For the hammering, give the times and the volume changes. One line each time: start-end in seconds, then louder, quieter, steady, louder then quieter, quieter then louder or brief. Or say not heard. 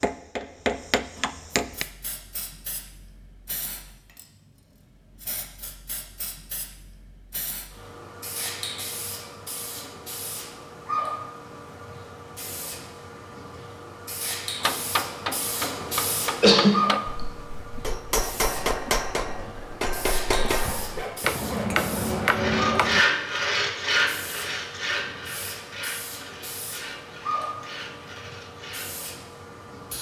0.0-1.9 brief
14.6-23.1 louder.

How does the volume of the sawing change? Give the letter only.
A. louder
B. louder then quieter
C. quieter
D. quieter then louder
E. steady
B.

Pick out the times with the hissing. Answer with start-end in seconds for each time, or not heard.
1.6-29.9.